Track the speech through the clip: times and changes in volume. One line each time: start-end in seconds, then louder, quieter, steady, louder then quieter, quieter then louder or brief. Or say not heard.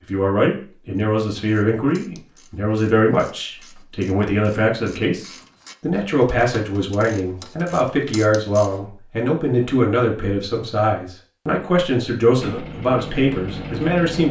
0.1-14.2 steady.